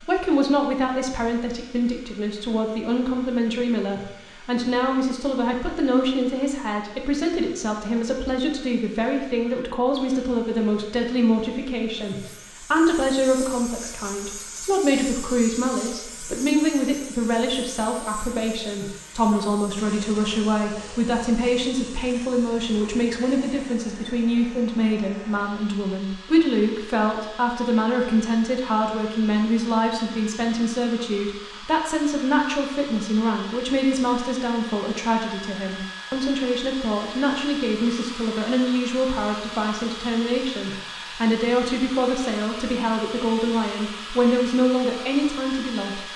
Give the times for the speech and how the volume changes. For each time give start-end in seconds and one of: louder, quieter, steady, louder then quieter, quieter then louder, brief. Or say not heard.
0.0-46.0 steady.